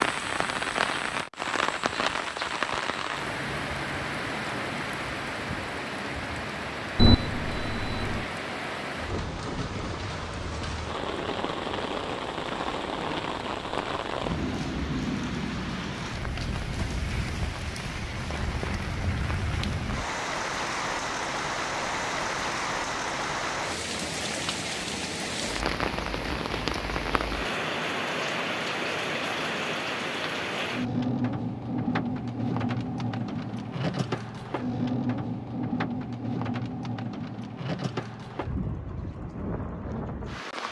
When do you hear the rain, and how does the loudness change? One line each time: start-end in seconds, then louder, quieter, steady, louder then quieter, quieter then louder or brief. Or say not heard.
0.0-40.6 steady.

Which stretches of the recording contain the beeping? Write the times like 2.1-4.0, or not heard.
7.0-8.2.